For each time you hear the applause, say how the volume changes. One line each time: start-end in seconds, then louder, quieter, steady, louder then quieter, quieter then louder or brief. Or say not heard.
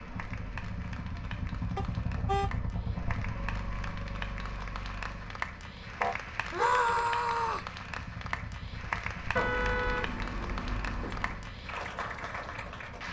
0.0-13.0 louder.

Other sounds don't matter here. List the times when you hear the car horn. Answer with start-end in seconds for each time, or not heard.
1.8-2.5, 6.0-6.8, 9.3-11.3.